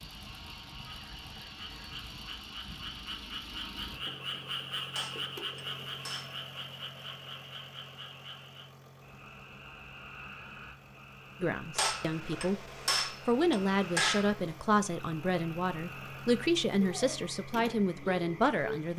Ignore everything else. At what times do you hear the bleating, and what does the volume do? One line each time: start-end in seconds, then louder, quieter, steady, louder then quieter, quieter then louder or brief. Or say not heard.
not heard.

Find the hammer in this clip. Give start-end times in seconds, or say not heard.
4.9-6.5, 11.8-14.6.